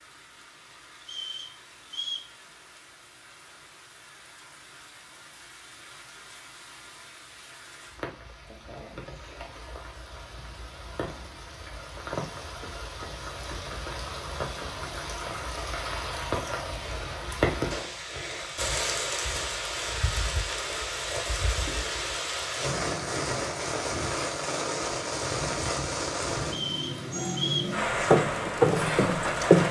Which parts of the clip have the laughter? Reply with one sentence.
You can't hear the laughter here.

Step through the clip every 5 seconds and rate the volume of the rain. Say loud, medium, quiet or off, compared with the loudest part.
quiet, quiet, medium, loud, loud, loud.